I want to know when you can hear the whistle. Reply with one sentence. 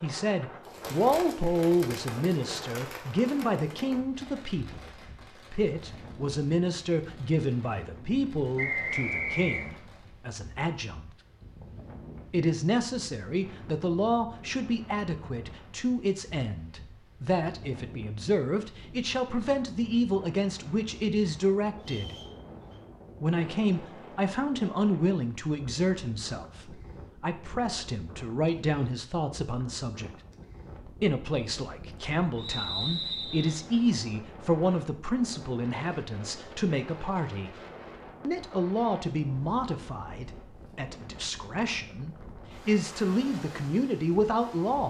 You can hear the whistle from 8.6 to 9.7 s, from 21.8 to 22.8 s and from 32.4 to 33.5 s.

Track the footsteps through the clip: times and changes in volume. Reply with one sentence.
You can't hear the footsteps here.